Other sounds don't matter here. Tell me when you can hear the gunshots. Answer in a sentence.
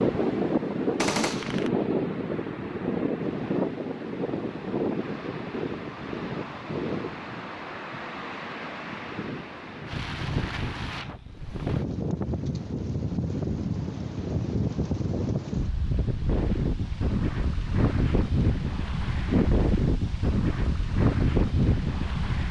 The gunshots can be heard from 0.9 to 1.7 s.